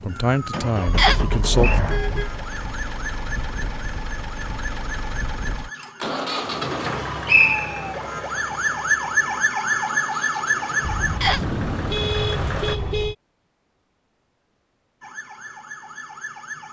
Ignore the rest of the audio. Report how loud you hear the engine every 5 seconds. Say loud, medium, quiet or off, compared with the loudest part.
loud, loud, loud, off.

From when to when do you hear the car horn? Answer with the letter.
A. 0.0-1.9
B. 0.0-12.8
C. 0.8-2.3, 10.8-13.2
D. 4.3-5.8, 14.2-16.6
C.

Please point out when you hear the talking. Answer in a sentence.
The talking can be heard from 0.0 to 1.9 s.